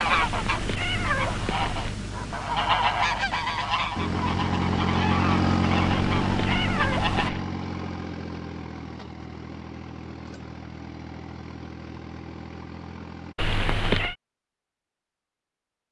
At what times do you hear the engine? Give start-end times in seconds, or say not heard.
4.0-13.3.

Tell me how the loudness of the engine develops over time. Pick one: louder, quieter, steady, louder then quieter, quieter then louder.
quieter.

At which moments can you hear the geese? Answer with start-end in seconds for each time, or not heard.
0.0-7.3.